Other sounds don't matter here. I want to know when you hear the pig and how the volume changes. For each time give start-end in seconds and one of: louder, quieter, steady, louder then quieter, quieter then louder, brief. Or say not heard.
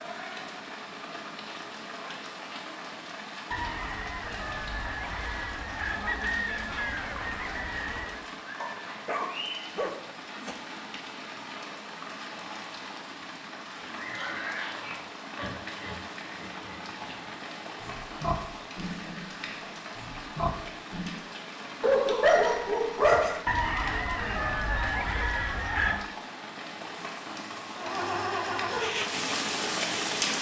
13.8-21.2 quieter then louder.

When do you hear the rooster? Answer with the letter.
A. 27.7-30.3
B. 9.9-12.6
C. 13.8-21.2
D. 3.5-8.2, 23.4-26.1
D.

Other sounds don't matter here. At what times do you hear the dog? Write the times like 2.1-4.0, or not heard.
8.6-10.6, 21.8-23.4.